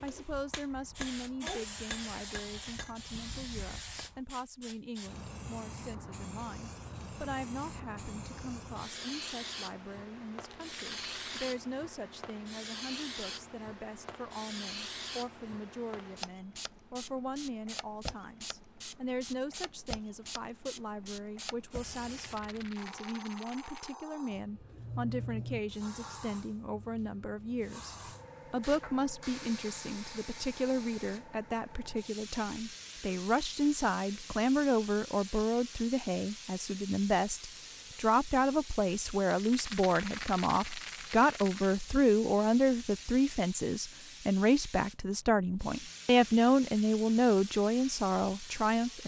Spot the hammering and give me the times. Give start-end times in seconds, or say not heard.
0.0-4.2.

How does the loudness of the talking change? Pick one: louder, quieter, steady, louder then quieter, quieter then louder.
louder.